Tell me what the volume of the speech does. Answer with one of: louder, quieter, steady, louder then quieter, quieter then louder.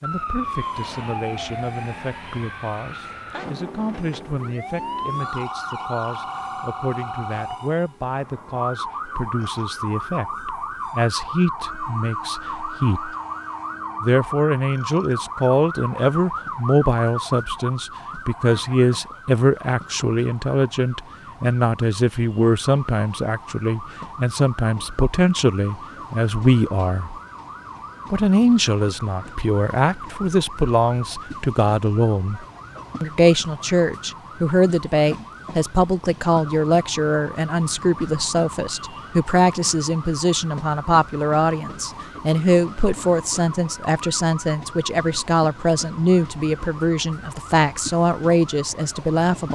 louder.